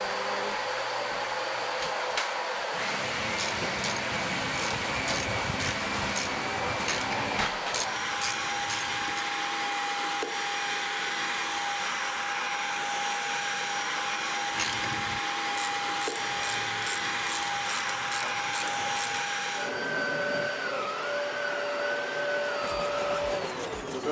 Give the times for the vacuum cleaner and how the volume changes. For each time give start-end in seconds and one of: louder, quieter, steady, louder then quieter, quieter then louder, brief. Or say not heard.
0.0-24.0 steady.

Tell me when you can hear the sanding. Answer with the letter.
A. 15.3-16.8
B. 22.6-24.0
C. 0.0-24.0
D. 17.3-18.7
B.